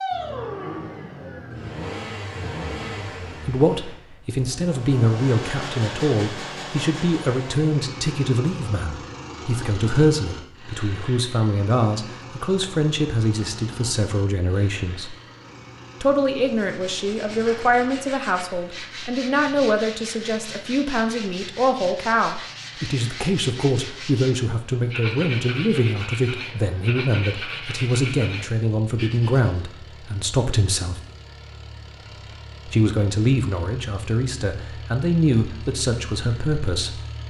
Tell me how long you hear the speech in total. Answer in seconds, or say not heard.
31 s.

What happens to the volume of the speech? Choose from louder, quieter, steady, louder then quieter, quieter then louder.
steady.